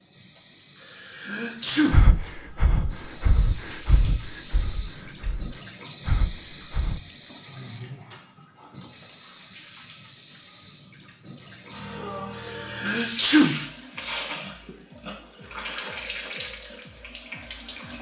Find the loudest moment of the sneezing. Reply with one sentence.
The volume of the sneezing peaks at 13 seconds.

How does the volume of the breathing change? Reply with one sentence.
The volume of the breathing goes down, then up.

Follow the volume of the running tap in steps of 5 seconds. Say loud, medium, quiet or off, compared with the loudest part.
medium, loud, loud, loud.